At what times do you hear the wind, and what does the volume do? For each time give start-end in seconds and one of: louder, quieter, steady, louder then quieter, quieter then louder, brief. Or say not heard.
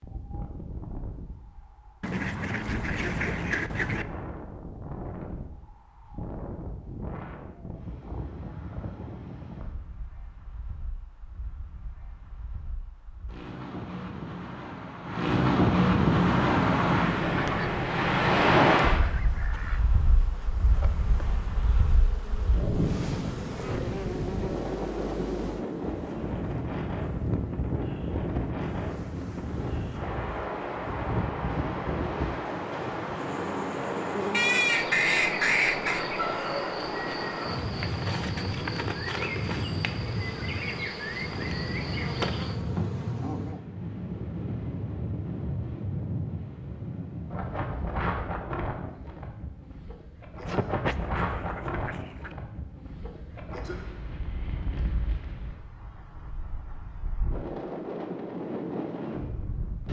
0.0-59.8 louder then quieter.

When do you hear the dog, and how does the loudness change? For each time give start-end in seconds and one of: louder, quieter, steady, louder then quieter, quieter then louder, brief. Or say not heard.
not heard.